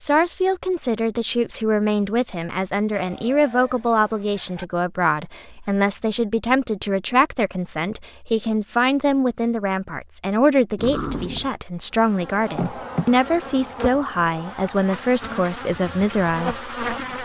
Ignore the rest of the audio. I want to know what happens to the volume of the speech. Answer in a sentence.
The volume of the speech stays about the same.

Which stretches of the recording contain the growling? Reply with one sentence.
The growling can be heard from 10.8 to 11.5 s.